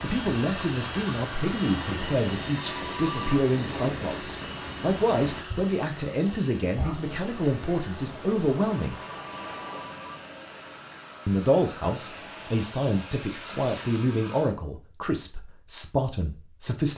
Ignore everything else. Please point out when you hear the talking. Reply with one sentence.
The talking can be heard from 0.0 to 9.0 s and from 11.2 to 16.9 s.